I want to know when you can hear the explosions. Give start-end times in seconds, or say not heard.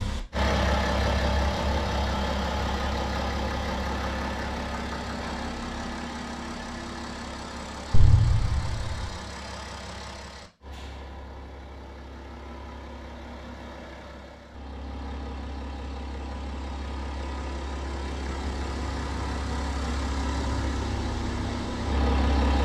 7.9-9.2.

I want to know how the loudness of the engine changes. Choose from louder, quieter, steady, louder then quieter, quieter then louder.
quieter then louder.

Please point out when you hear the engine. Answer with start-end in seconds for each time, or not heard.
0.0-22.5.